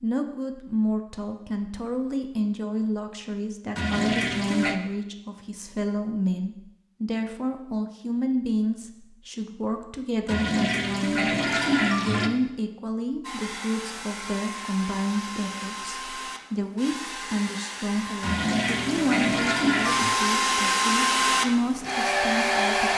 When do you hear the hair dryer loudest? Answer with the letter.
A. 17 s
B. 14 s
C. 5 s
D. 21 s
D.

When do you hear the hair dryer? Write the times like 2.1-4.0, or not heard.
13.2-22.9.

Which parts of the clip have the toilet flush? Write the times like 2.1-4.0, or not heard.
3.8-4.8, 10.2-12.3, 18.2-20.1.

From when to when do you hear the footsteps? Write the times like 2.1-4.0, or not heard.
not heard.